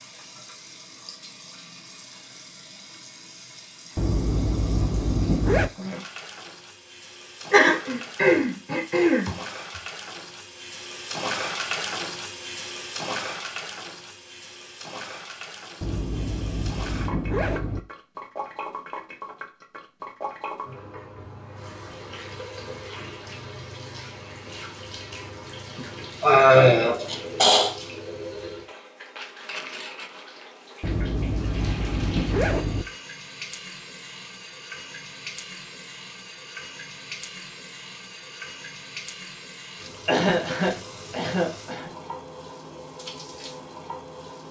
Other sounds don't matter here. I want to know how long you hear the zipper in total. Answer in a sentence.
The zipper can be heard for 6 seconds in total.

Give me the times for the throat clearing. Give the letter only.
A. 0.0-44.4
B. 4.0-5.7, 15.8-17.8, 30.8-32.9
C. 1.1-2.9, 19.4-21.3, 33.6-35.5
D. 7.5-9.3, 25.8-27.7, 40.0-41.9
D.